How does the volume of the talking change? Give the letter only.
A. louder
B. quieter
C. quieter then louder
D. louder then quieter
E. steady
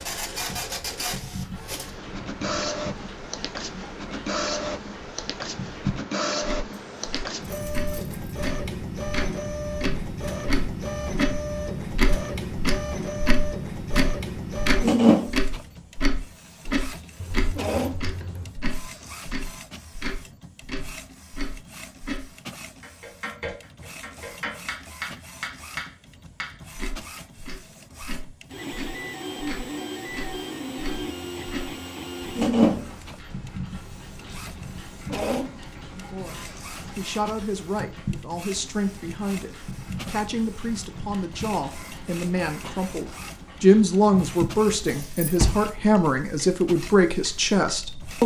A.